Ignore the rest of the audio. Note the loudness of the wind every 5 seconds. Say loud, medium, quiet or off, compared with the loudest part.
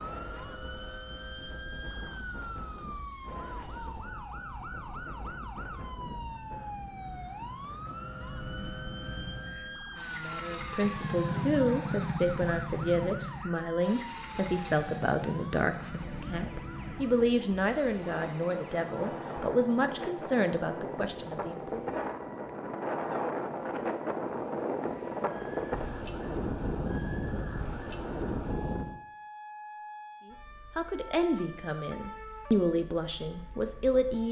quiet, quiet, quiet, medium, loud, loud, off.